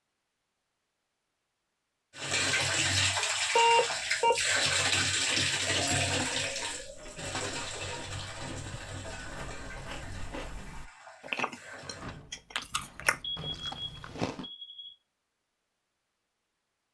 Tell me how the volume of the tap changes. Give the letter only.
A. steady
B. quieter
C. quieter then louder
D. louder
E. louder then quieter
B.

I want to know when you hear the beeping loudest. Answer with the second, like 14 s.
4 s.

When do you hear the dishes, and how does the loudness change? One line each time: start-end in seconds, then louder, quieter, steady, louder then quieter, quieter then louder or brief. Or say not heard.
not heard.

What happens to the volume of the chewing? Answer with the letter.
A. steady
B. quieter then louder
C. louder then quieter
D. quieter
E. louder
E.